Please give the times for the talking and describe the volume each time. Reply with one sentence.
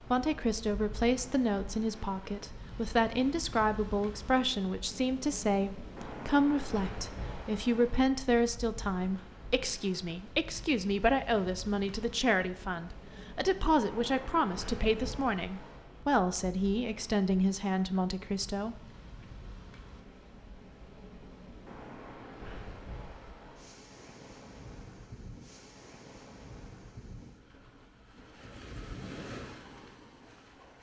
The talking can be heard from 0.0 to 18.8 s, at a steady volume.